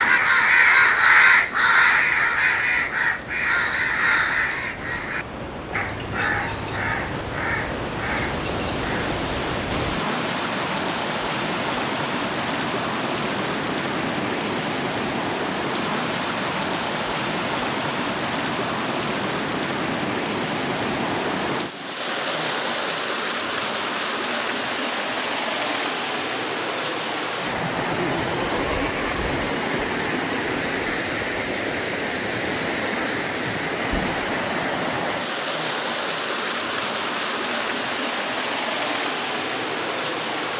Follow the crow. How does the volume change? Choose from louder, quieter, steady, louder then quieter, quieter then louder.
quieter.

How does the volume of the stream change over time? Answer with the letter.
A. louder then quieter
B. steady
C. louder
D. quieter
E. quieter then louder
C.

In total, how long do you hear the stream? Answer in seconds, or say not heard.
40 s.